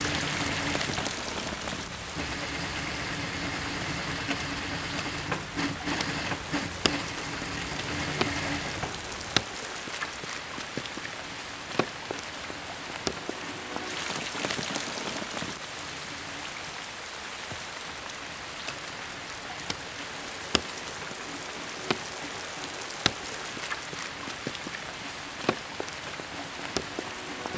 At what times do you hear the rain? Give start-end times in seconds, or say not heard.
0.0-27.5.